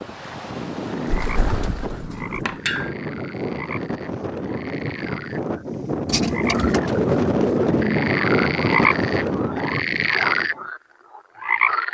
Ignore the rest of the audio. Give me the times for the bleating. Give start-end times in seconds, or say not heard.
not heard.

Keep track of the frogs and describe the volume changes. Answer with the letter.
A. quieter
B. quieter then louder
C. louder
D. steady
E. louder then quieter
C.